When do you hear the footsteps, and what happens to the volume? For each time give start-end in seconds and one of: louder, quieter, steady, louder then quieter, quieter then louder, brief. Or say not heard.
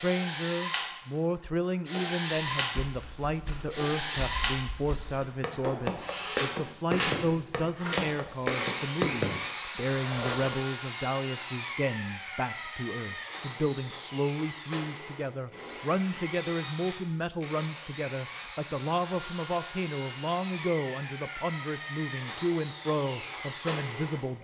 2.5-10.6 louder.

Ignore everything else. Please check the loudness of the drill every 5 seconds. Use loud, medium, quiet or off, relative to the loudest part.
loud, loud, medium, medium, medium.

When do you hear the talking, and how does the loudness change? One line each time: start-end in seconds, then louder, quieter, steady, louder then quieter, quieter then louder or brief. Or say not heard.
0.0-24.3 steady.